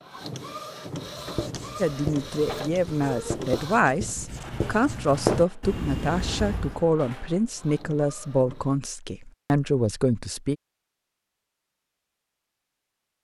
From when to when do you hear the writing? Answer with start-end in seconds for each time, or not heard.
0.9-6.8.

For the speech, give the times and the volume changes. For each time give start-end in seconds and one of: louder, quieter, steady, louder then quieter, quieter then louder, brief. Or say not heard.
1.8-10.6 steady.